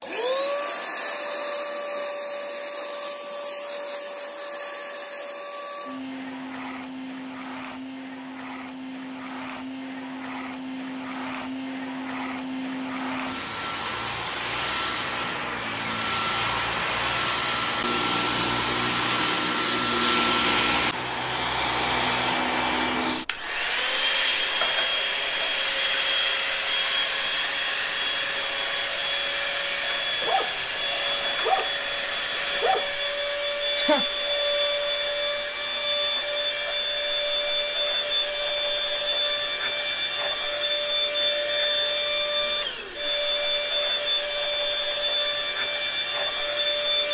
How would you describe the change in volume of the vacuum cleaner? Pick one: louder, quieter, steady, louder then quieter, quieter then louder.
louder.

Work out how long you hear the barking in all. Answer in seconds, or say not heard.
3 s.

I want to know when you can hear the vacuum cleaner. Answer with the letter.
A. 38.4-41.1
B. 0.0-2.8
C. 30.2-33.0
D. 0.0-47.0
D.